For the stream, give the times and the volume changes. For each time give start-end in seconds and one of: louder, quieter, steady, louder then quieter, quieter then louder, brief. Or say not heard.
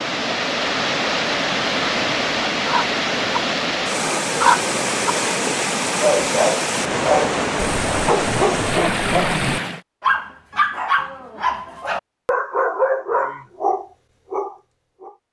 0.0-9.8 steady.